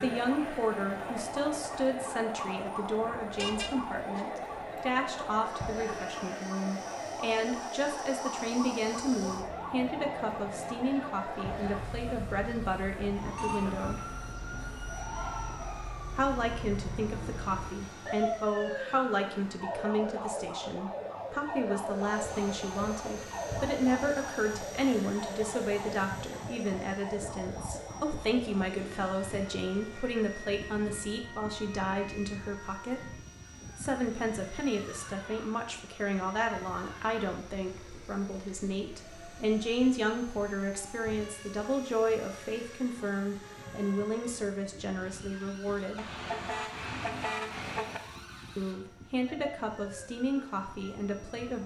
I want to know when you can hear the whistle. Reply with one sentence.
You can't hear the whistle here.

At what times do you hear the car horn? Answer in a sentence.
You can hear the car horn from 3.4 to 4.2 s and from 46.0 to 48.0 s.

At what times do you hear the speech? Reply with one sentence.
You can hear the speech from 0.0 to 14.0 s, from 16.1 to 33.1 s, from 33.8 to 46.0 s and from 48.5 to 51.6 s.